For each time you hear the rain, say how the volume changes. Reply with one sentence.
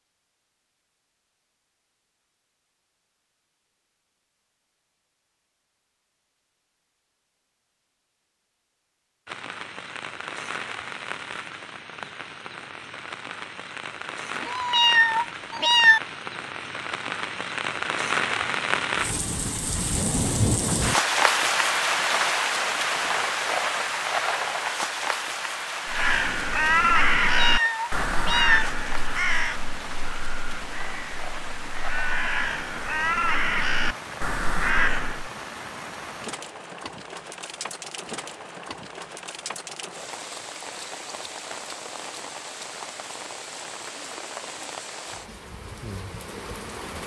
You can hear the rain from 9.2 to 47.0 s, getting louder then quieter.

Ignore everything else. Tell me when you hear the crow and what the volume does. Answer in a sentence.
The crow can be heard from 25.9 to 35.3 s, getting quieter then louder.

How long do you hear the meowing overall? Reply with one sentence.
The meowing can be heard for 3 seconds in total.